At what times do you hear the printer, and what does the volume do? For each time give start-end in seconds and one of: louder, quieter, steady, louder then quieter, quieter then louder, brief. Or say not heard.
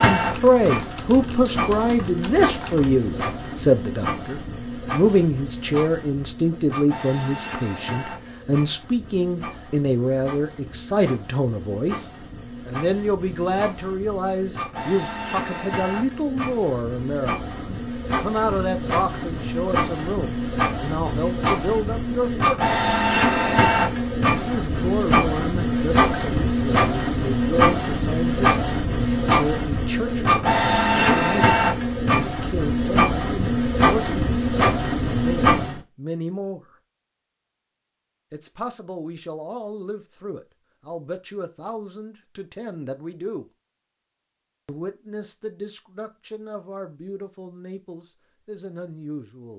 0.0-35.8 quieter then louder.